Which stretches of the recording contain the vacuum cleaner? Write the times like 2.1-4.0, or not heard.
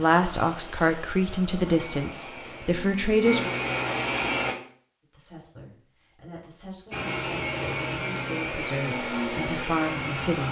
0.0-4.5, 6.9-10.4.